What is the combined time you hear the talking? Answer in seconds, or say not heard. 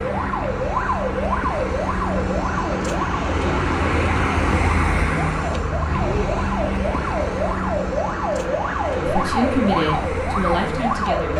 2 s.